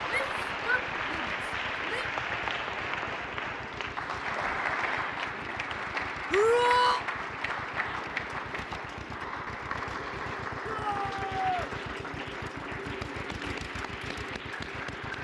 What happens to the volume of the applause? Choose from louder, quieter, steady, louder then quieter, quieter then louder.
quieter.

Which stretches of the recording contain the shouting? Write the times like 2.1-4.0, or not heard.
0.1-2.0, 6.3-7.0, 10.7-11.7.